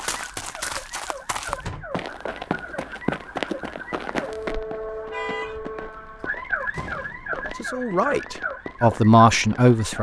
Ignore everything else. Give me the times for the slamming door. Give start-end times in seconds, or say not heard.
1.4-2.0, 6.2-7.5.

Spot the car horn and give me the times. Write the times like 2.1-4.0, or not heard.
4.7-5.6.